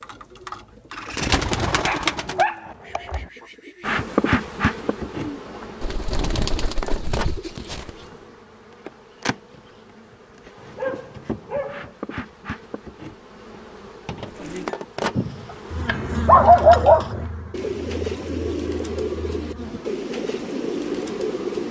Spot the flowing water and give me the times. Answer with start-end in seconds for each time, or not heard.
not heard.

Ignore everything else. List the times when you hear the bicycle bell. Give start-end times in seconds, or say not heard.
not heard.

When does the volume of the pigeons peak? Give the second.
1 s.